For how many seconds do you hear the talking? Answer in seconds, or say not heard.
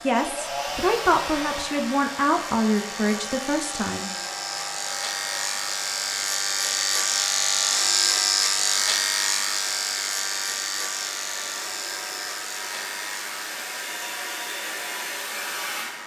4 s.